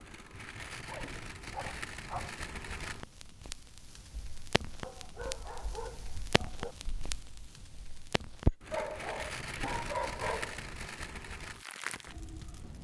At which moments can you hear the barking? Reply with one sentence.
The barking can be heard from 0.3 to 2.4 s, from 4.8 to 6.8 s and from 8.7 to 10.7 s.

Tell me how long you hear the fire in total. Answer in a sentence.
You can hear the fire for 13 seconds altogether.